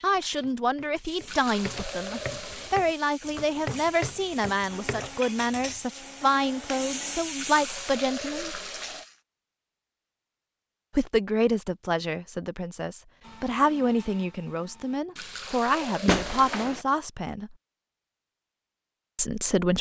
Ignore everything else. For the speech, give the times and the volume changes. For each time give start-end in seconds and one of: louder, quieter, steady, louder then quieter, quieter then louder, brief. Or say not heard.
0.0-8.6 steady
10.9-17.6 steady
19.1-19.7 brief.